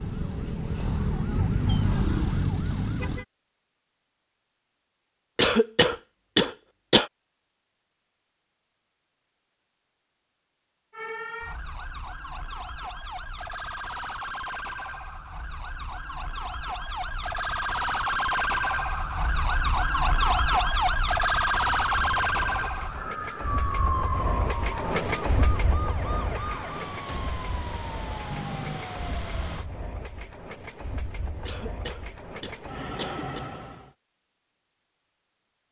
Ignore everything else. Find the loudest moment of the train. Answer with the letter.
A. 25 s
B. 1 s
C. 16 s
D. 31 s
A.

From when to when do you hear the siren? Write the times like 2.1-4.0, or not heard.
0.0-3.2, 10.9-29.6.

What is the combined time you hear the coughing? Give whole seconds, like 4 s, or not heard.
4 s.